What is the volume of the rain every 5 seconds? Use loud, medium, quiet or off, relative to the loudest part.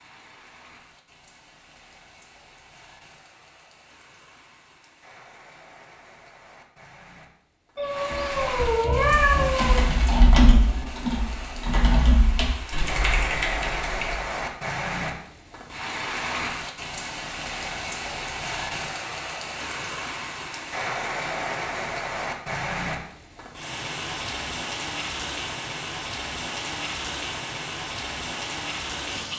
quiet, medium, loud, loud, loud, loud.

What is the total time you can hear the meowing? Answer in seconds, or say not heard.
2 s.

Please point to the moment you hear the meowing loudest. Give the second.
9 s.